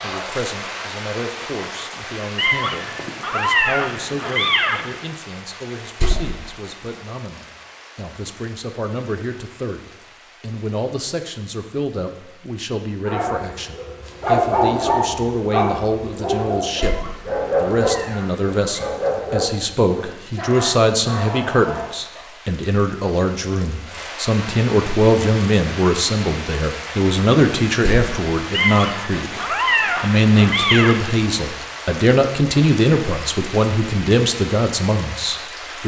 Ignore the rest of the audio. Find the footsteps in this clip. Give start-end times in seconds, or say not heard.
not heard.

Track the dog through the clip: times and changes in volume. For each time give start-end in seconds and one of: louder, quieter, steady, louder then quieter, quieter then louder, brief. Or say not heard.
13.1-22.3 quieter.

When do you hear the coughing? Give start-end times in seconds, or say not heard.
not heard.